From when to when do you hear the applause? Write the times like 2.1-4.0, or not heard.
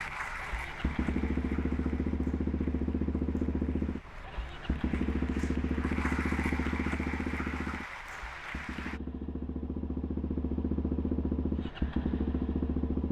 0.0-9.0.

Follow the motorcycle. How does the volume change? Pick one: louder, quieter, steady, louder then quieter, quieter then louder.
quieter then louder.